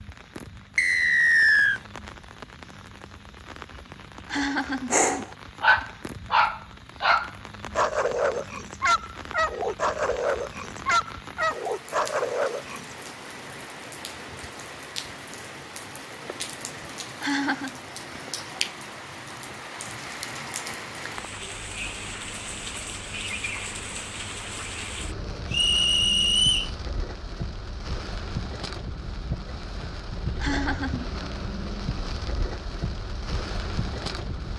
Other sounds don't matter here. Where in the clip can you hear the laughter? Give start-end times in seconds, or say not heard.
3.9-5.2, 16.8-17.8, 30.0-31.2.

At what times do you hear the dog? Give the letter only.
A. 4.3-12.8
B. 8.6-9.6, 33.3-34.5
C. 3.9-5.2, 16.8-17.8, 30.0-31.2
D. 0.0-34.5
A.